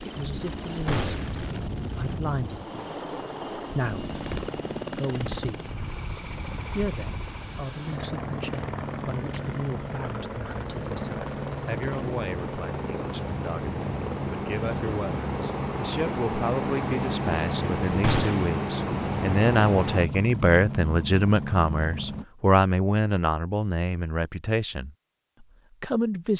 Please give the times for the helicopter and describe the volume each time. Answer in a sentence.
The helicopter can be heard from 0.0 to 22.2 s, at a steady volume.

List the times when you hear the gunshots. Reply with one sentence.
The gunshots can be heard from 0.8 to 1.4 s and from 18.0 to 18.5 s.